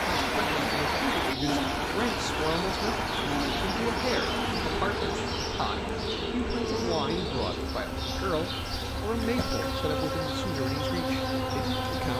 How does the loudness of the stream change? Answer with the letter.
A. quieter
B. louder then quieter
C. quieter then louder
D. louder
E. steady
A.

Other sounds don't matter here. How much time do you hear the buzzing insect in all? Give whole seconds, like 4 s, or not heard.
12 s.